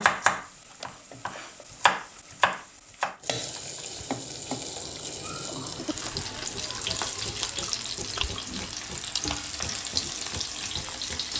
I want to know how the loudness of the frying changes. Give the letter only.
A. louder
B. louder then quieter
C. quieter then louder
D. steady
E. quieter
A.